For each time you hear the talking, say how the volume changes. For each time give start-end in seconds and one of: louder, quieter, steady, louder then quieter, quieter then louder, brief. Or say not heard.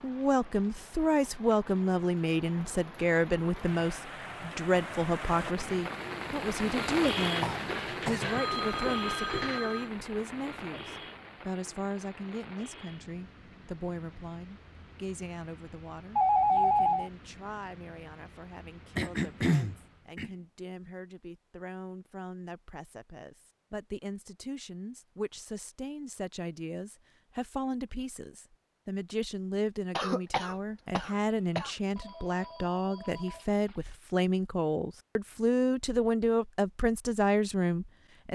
0.0-38.3 quieter then louder.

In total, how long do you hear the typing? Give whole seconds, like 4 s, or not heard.
not heard.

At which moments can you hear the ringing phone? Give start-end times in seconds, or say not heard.
7.4-9.9, 16.1-17.1, 31.9-34.0.